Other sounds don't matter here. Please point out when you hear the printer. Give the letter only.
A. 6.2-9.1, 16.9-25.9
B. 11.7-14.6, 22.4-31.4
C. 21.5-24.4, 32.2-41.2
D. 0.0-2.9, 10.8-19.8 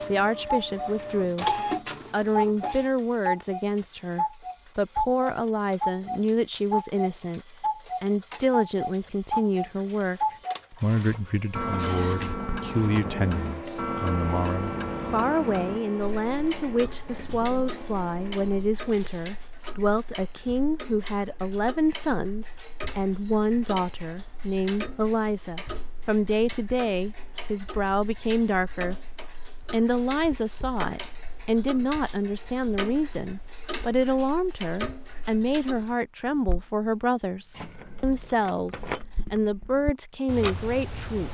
D.